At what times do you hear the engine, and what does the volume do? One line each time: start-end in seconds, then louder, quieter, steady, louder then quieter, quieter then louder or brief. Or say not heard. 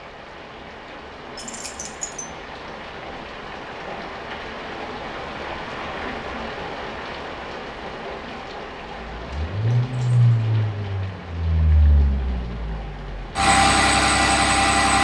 8.9-14.9 quieter then louder.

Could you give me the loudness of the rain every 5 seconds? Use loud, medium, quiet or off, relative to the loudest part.
loud, loud, medium.